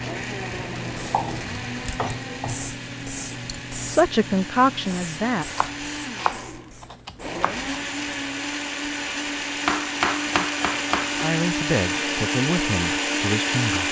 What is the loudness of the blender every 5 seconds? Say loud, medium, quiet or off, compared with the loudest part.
medium, medium, loud.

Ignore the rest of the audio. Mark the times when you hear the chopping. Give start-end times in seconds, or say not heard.
1.1-2.6, 4.9-7.5, 9.7-11.3.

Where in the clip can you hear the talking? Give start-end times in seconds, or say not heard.
3.9-5.5, 11.2-13.8.